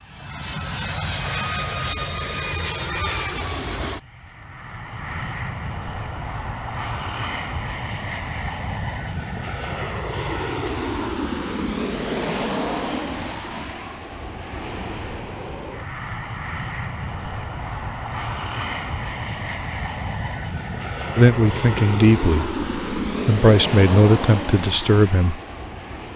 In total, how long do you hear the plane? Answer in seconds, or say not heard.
26 s.